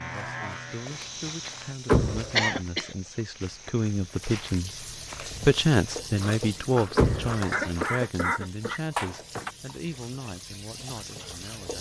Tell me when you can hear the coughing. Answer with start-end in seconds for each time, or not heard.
2.4-2.9, 7.5-9.6.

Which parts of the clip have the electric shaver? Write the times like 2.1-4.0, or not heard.
0.0-1.8.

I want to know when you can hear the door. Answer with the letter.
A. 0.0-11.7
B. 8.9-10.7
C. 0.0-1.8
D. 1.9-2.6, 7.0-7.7
D.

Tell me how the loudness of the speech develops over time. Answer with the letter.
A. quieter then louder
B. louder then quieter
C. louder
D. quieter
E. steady
B.